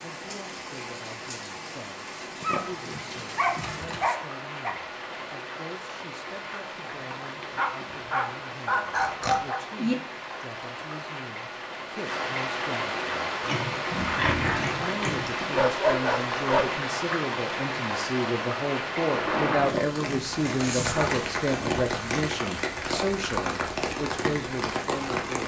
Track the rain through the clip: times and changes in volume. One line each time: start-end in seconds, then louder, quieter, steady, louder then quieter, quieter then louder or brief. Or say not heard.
0.0-25.4 louder.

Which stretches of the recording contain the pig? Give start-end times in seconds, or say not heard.
2.4-4.0, 8.9-9.9, 13.4-15.4, 19.6-21.3.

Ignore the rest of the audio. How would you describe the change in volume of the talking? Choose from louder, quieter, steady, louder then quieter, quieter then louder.
louder.